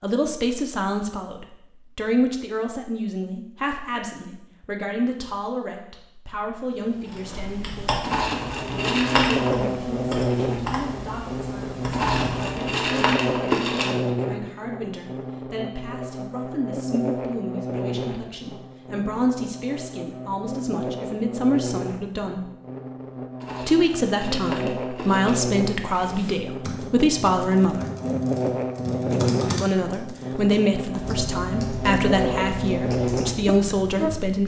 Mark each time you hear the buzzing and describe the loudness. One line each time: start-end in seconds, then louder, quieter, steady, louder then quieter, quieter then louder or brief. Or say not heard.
8.7-34.4 quieter then louder.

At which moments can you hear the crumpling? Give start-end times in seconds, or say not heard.
8.0-9.7, 11.9-13.9, 23.4-25.4.